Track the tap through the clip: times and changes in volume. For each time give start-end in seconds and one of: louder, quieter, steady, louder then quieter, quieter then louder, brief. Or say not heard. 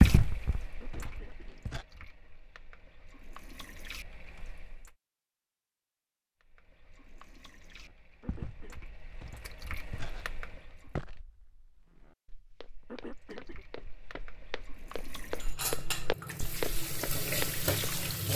0.0-5.0 quieter then louder
6.4-11.1 louder
12.6-18.3 louder.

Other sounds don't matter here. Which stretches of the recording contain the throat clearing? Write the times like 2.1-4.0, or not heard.
0.8-1.6, 8.2-8.9, 12.8-13.7.